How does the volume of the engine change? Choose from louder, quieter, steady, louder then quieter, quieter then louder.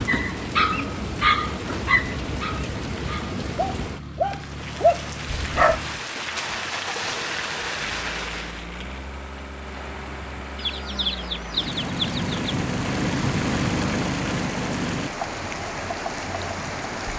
louder.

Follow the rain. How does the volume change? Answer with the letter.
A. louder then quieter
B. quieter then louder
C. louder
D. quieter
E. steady
E.